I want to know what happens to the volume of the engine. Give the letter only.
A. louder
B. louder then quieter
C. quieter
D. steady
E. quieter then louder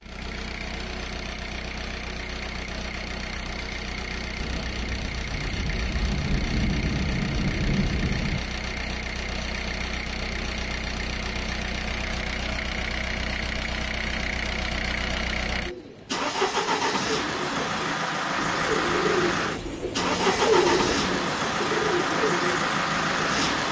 A.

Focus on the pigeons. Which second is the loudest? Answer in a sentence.
The volume of the pigeons peaks at 21 seconds.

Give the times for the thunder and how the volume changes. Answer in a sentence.
You can hear the thunder from 4.4 to 8.4 s, getting louder.